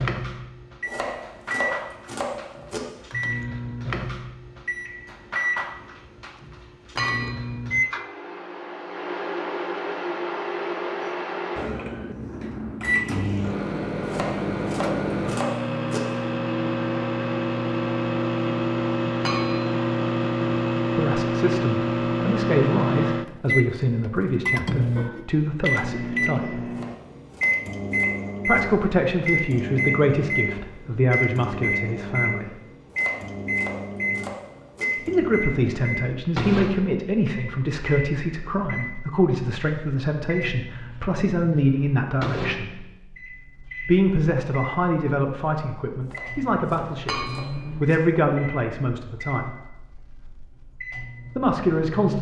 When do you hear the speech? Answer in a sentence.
The speech can be heard from 20.9 to 26.6 s, from 28.4 to 32.6 s, from 35.0 to 42.7 s, from 43.8 to 49.5 s and from 51.4 to 52.1 s.